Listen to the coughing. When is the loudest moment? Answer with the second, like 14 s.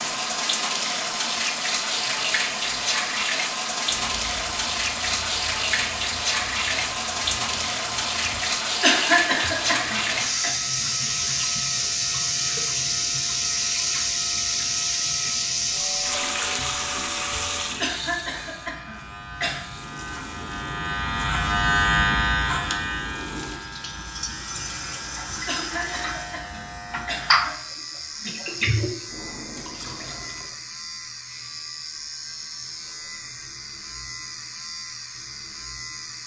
9 s.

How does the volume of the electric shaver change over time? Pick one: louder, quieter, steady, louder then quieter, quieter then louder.
louder then quieter.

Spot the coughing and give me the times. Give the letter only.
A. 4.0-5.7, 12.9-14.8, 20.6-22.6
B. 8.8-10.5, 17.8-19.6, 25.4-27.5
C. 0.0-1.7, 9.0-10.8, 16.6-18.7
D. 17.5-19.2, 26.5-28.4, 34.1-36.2
B.